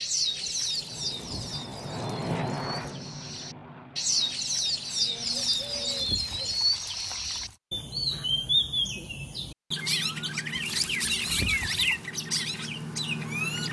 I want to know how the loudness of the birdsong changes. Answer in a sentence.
The loudness of the birdsong goes up.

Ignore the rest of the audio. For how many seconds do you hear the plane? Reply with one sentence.
The plane can be heard for 7 seconds in total.